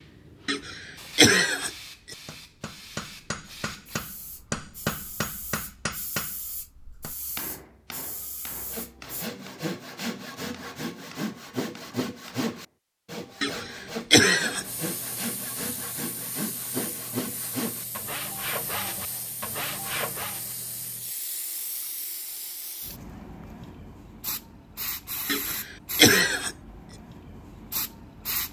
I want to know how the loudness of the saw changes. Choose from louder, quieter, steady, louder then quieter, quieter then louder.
steady.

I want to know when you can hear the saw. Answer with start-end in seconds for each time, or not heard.
8.7-20.6.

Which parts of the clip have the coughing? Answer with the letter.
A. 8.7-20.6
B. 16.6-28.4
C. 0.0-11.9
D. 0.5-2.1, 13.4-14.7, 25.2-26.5
D.